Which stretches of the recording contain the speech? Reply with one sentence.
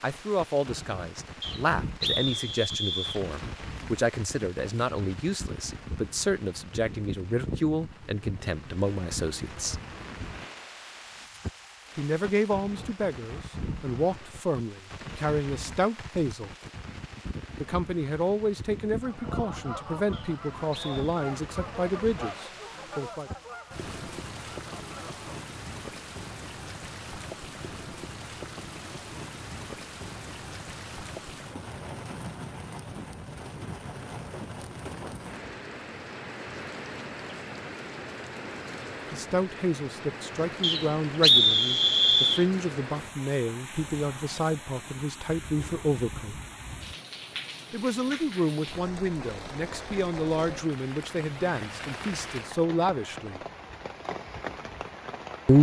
The speech can be heard from 0.0 to 9.8 s, from 11.9 to 16.5 s, from 17.6 to 23.3 s, from 39.1 to 46.4 s and from 47.7 to 53.4 s.